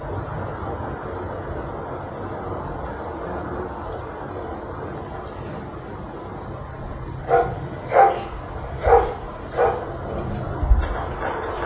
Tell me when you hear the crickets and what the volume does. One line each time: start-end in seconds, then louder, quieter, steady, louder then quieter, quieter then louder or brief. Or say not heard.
0.0-11.6 steady.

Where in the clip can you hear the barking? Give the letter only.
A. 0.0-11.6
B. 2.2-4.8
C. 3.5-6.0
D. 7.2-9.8
D.